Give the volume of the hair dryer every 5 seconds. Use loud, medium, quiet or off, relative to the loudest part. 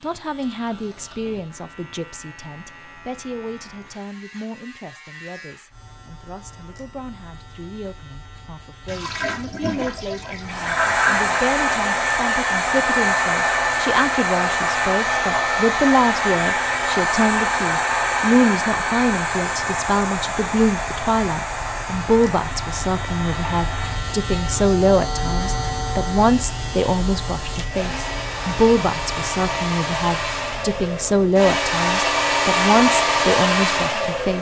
off, off, loud, loud, medium, medium, loud.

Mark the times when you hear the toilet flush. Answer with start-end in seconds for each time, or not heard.
8.8-11.4.